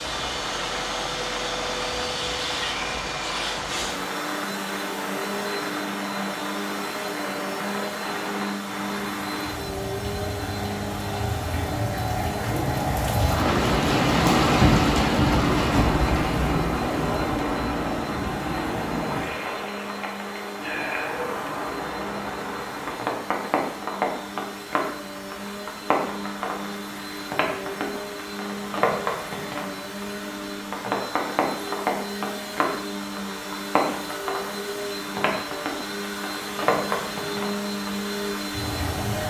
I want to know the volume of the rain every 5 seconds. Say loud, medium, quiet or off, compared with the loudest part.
medium, medium, loud, loud, medium, medium, medium, medium.